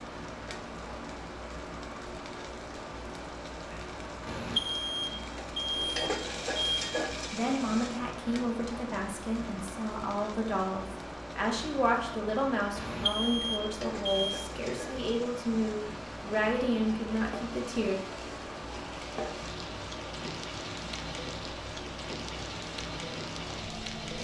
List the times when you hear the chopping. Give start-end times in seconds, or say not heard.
not heard.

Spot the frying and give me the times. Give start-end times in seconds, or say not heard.
0.0-24.1.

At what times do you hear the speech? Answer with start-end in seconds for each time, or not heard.
7.3-17.9.